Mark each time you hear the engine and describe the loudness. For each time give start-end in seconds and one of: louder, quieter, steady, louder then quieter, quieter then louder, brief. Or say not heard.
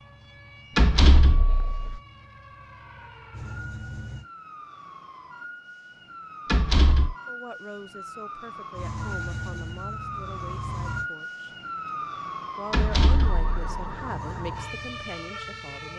0.0-4.2 louder
8.7-11.1 brief
13.9-15.9 brief.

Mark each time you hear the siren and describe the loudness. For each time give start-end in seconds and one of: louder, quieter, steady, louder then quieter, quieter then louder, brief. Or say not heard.
0.0-15.9 louder.